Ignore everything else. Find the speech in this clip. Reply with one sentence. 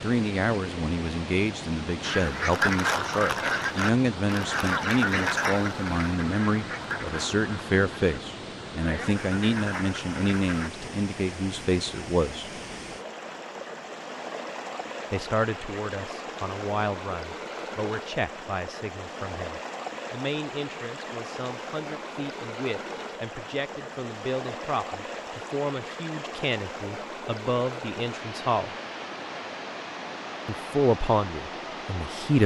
You can hear the speech from 0.0 to 12.5 s, from 15.1 to 28.7 s and from 30.4 to 32.4 s.